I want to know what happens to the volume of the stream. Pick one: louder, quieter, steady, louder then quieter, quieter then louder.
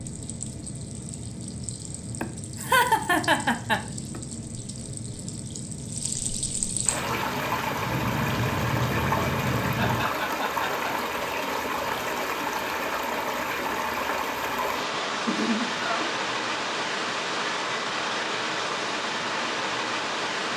louder.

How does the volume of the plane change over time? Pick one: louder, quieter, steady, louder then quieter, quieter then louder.
louder.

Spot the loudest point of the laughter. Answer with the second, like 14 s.
3 s.